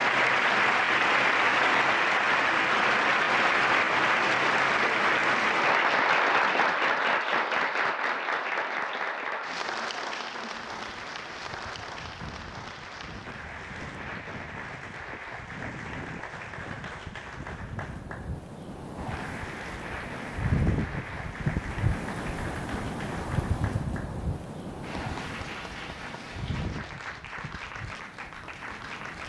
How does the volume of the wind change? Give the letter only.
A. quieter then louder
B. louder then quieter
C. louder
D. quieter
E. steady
B.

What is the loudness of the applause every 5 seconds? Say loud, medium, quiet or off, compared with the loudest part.
loud, loud, quiet, quiet, quiet, quiet.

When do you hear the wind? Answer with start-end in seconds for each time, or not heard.
10.5-29.2.